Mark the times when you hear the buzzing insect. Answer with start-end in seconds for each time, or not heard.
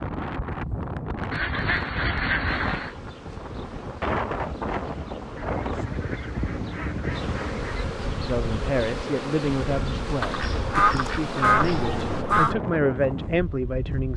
2.5-12.2.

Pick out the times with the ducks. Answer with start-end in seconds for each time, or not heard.
1.3-3.0, 5.3-7.8, 10.2-12.6.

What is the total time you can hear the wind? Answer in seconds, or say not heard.
14 s.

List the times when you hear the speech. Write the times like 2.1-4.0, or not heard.
8.2-14.1.